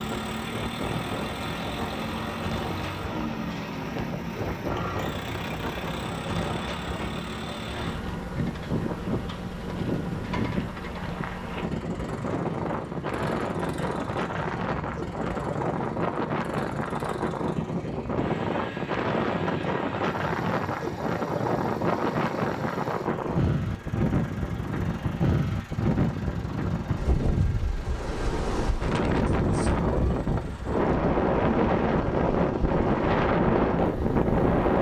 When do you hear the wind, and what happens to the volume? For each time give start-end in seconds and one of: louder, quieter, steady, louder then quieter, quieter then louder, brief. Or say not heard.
0.0-34.7 louder.